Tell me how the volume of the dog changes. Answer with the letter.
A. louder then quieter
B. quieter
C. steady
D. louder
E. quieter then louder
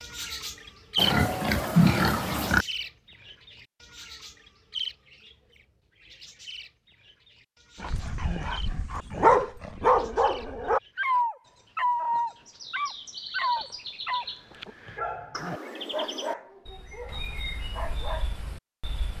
B.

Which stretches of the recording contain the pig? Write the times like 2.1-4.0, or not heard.
0.9-2.6.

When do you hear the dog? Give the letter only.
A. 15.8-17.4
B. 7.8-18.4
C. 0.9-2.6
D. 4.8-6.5
B.